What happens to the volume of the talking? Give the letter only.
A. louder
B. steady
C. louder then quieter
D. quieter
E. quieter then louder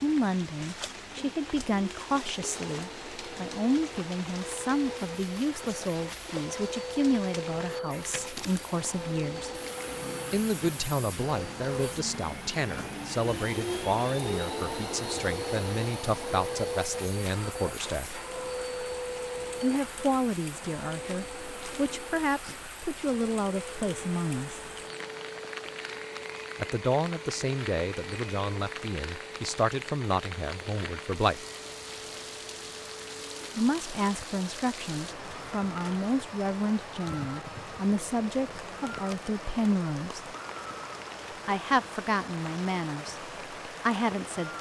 B.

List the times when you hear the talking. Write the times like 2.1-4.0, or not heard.
0.0-9.5, 10.3-18.2, 19.6-24.6, 26.6-31.4, 33.5-40.4, 41.5-44.5.